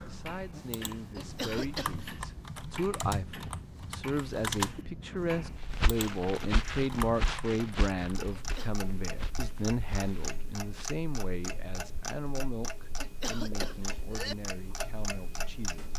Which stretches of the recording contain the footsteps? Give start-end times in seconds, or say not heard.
5.6-10.9.